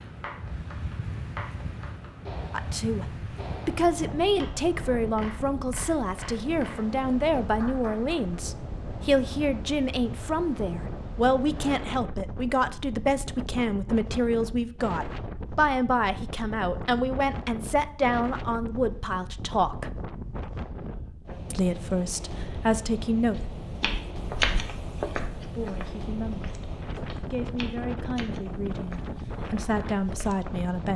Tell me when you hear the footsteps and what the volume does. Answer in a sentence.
You can hear the footsteps from 23.3 to 30.4 s, getting quieter.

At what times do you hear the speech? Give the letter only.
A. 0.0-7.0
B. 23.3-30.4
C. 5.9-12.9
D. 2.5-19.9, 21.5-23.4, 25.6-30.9
D.